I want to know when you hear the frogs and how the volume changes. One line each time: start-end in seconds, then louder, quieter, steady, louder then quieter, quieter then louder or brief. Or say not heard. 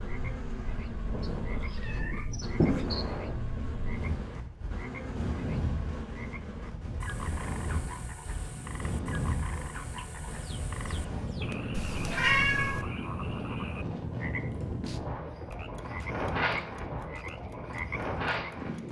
0.0-18.8 steady.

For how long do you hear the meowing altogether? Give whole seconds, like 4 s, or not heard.
3 s.